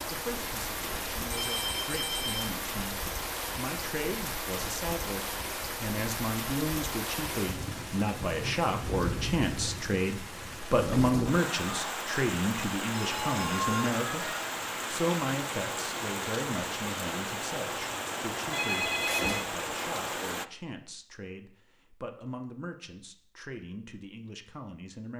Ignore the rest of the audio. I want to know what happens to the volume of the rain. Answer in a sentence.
The loudness of the rain stays about the same.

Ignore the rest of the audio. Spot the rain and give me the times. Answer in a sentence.
You can hear the rain from 0.0 to 20.4 s.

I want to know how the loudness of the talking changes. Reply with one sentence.
The loudness of the talking goes up, then down.